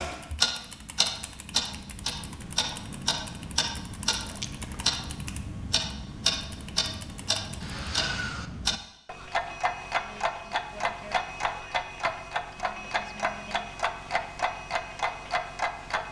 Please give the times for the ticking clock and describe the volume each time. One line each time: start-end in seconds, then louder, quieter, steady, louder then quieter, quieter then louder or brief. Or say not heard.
0.0-16.0 steady.